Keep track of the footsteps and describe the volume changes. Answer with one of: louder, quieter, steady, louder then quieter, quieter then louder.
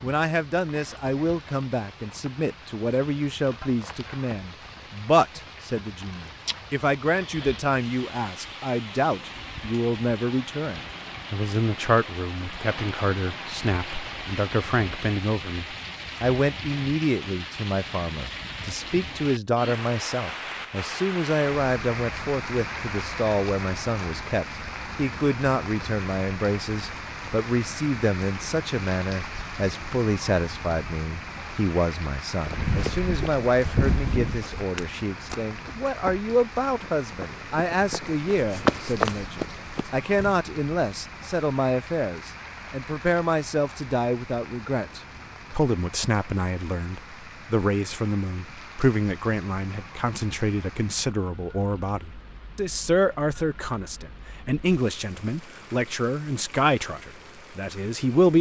quieter then louder.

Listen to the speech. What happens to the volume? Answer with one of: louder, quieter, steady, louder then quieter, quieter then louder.
steady.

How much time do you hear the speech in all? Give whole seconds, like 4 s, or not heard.
58 s.